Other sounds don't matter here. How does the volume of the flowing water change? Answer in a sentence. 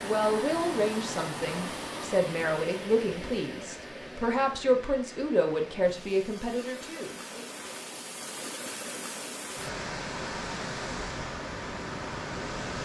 The volume of the flowing water goes down, then up.